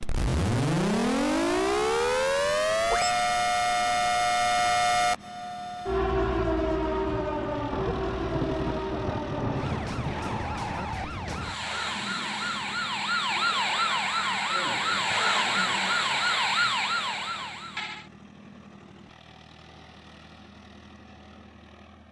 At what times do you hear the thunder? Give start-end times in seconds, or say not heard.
7.7-10.8.